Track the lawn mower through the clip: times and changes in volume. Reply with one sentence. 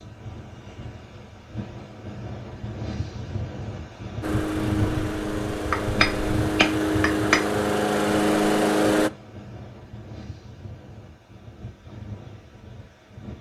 You can hear the lawn mower from 4.2 to 9.1 s, getting louder.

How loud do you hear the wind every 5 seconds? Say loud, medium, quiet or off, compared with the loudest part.
loud, loud, medium.